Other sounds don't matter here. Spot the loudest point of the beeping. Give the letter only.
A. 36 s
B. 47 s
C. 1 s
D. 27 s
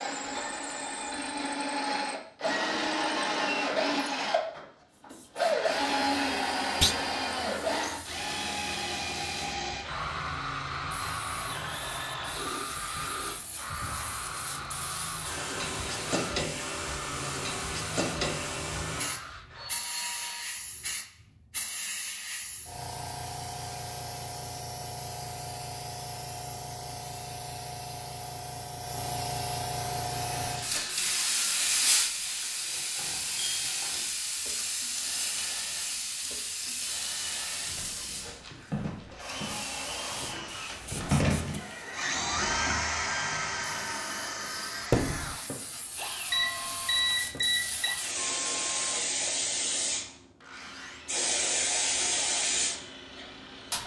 B.